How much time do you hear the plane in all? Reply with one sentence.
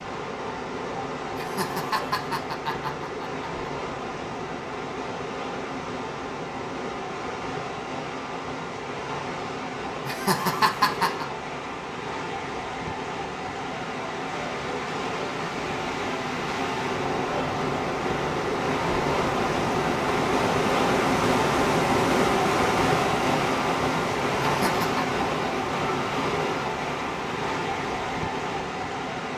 The plane can't be heard in this clip.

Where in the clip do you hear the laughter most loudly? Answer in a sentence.
The volume of the laughter peaks at 11 seconds.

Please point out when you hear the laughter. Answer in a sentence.
You can hear the laughter from 1.4 to 3.5 s, from 10.1 to 11.2 s and from 24.4 to 25.1 s.